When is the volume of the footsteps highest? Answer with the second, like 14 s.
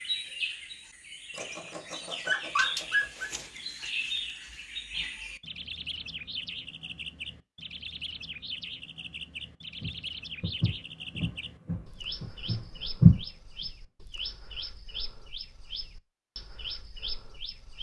13 s.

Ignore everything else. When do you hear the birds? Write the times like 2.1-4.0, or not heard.
0.0-17.7.